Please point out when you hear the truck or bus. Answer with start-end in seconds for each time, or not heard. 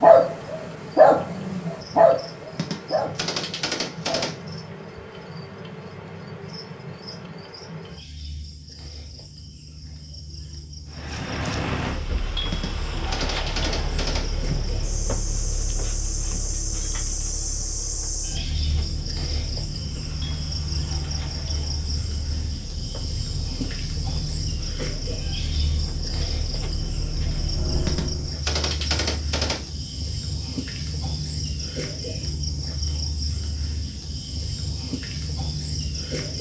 10.8-28.4.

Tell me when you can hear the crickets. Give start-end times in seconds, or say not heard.
0.0-36.3.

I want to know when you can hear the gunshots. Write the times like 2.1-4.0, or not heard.
2.5-4.4, 12.5-14.3, 27.9-29.7.